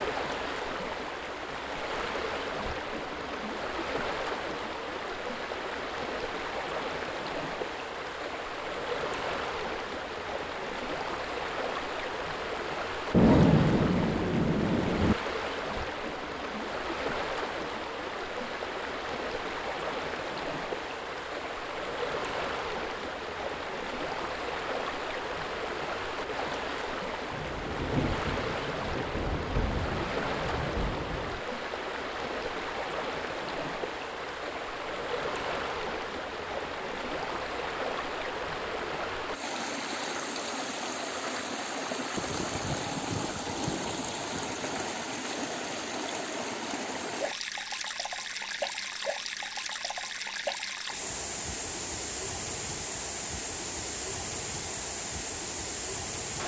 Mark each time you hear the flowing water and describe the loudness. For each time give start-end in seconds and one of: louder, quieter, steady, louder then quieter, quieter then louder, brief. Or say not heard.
0.0-56.4 steady.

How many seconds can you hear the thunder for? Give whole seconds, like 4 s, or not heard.
9 s.